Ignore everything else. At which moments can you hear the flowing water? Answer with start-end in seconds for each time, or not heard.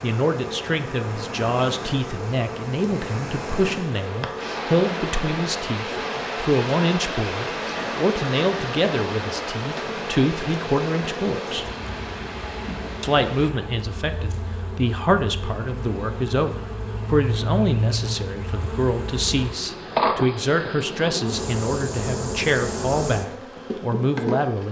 0.0-13.5.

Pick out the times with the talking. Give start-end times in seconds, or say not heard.
0.0-11.7, 13.0-24.6.